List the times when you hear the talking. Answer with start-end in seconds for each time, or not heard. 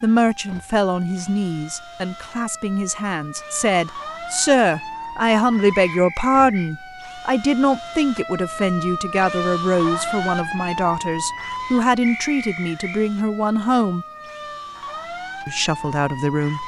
0.0-14.1, 15.4-16.6.